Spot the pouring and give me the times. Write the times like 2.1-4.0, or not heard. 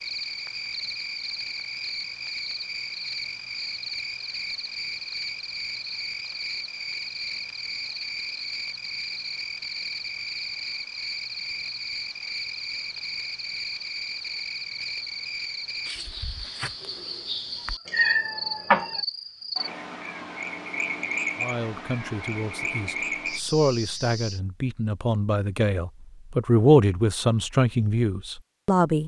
not heard.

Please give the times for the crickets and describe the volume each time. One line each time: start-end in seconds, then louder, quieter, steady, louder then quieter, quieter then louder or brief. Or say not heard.
0.0-24.4 steady.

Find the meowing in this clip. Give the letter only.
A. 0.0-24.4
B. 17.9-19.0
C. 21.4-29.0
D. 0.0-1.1
B.